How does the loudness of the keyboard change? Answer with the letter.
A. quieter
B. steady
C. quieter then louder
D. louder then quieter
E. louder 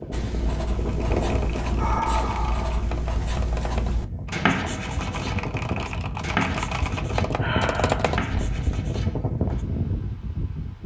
E.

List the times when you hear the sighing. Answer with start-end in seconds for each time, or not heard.
1.8-2.9, 6.9-8.2.